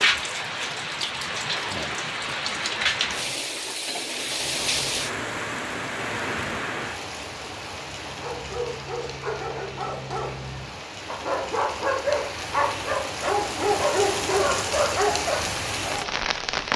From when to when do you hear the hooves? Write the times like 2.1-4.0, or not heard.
not heard.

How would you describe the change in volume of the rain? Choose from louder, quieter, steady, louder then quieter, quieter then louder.
quieter then louder.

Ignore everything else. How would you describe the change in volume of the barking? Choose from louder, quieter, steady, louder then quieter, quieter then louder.
louder.